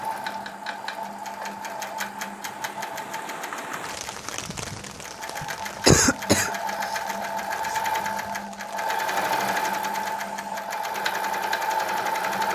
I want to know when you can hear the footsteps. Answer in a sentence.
You can't hear the footsteps here.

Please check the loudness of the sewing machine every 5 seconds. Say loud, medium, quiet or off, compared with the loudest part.
medium, loud, loud.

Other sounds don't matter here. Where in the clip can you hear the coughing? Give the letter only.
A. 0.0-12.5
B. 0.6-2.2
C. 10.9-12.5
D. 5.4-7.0
D.